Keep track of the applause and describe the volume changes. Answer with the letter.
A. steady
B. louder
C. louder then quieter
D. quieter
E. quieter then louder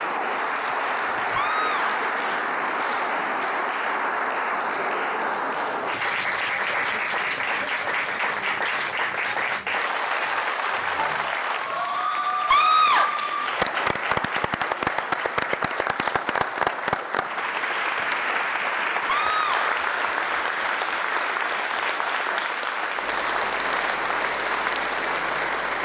A.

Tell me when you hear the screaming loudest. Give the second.
13 s.